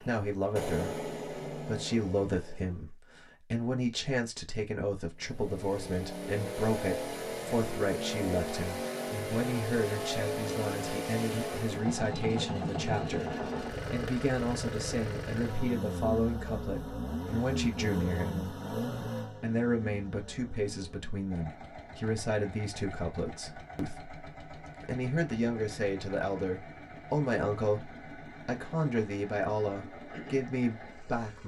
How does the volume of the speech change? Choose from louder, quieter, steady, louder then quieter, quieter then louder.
steady.